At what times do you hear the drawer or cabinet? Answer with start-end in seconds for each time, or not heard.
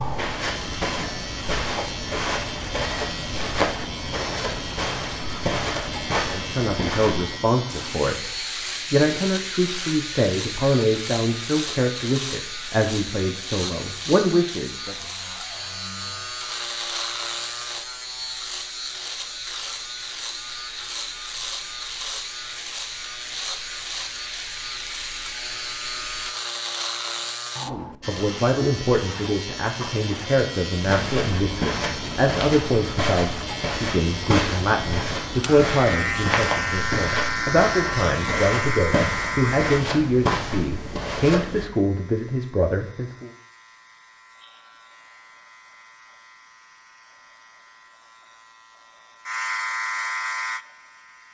14.8-16.5.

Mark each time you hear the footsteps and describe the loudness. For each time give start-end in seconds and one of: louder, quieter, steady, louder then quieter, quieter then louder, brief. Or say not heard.
0.0-7.3 steady
30.8-41.7 steady.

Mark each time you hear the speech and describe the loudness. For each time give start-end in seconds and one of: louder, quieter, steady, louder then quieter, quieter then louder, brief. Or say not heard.
6.2-14.9 steady
27.6-43.3 steady.